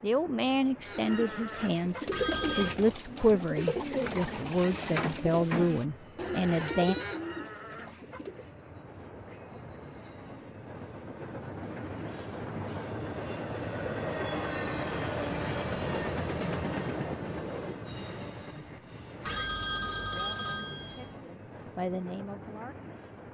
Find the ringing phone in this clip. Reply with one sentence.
The ringing phone can be heard from 2.1 to 2.8 s and from 19.2 to 21.1 s.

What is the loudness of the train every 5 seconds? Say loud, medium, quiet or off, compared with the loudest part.
quiet, quiet, loud, loud, medium.